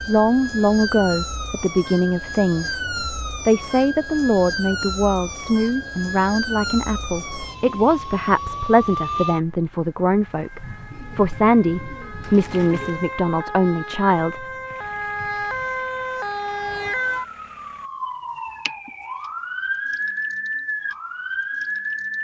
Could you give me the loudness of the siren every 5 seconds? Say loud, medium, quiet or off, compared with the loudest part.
loud, loud, medium, loud, loud.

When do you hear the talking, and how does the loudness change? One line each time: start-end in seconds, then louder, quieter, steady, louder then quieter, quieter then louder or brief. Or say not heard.
0.1-14.4 steady.